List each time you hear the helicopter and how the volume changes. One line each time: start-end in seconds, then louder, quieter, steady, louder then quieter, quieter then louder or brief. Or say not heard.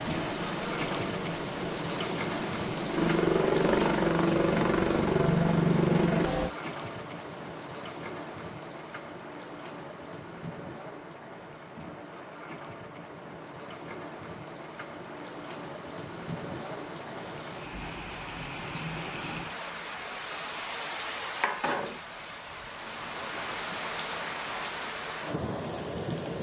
0.0-6.5 louder.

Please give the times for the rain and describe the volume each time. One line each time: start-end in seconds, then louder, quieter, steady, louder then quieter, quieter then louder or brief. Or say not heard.
0.0-26.3 quieter then louder.